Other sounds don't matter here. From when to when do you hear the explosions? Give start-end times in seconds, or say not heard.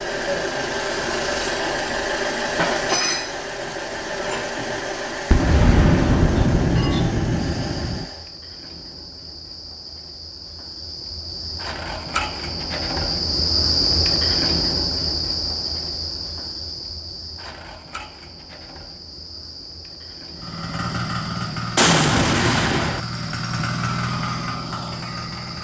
5.3-8.1, 21.8-23.0.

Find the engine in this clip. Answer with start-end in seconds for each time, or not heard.
0.0-8.3, 20.4-25.6.